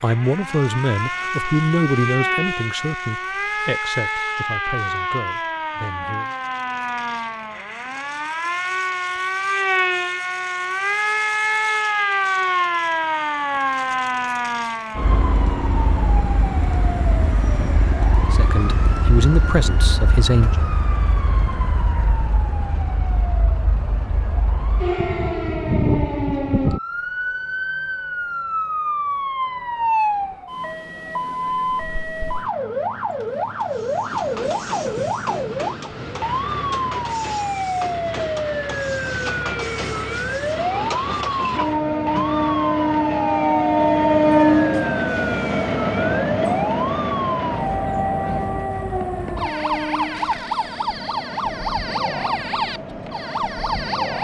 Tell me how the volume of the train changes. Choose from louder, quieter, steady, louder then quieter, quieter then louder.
louder then quieter.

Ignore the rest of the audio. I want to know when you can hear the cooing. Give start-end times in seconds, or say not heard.
not heard.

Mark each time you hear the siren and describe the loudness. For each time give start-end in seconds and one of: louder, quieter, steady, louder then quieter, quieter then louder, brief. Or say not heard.
0.0-54.2 steady.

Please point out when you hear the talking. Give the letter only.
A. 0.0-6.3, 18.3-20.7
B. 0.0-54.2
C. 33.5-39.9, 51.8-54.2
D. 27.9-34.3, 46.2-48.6
A.